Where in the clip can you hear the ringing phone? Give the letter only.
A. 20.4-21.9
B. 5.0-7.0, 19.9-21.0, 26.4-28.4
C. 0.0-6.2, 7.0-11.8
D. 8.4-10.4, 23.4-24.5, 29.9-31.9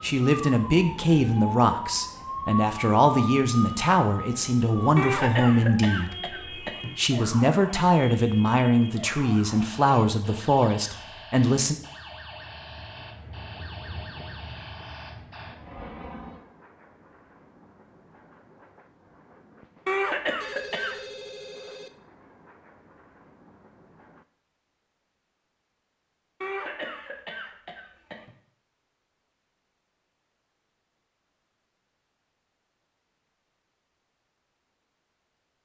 A.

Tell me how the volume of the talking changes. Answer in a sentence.
The loudness of the talking stays about the same.